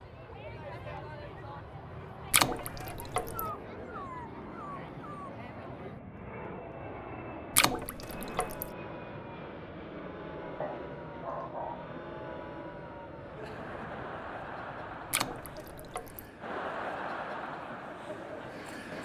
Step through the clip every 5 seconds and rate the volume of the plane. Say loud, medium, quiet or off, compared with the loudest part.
loud, loud, loud, medium.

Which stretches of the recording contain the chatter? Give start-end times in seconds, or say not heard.
0.0-18.9.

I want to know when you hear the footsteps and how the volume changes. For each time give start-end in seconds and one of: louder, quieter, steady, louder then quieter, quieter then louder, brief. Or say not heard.
not heard.